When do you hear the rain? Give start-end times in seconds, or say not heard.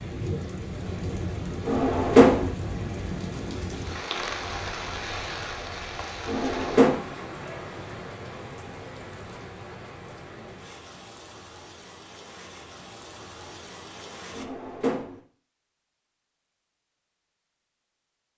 0.0-14.4.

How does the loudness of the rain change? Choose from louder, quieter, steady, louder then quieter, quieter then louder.
quieter.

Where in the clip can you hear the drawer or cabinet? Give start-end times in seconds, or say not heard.
1.6-2.5, 6.2-7.0, 14.3-15.2.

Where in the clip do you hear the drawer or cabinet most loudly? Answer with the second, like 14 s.
2 s.